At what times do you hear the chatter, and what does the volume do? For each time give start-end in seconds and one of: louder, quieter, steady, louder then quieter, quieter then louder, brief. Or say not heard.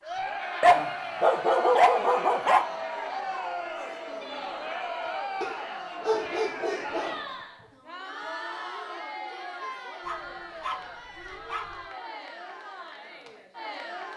0.0-14.1 quieter.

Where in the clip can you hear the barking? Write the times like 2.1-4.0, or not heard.
0.6-2.6, 5.4-7.2, 10.1-11.8.